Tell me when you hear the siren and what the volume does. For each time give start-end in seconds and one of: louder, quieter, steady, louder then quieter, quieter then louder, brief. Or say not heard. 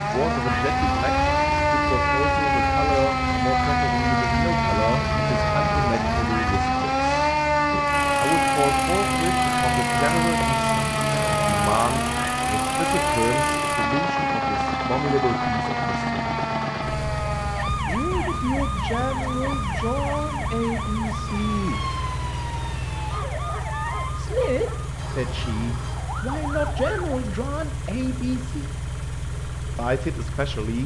0.0-27.2 quieter.